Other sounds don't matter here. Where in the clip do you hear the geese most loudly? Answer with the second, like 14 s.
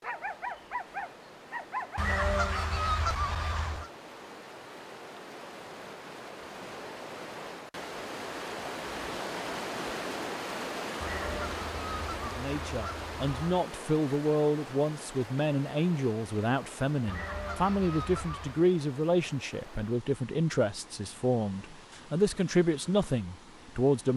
2 s.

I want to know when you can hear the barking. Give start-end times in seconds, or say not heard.
0.0-2.0.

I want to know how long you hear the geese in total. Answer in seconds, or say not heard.
6 s.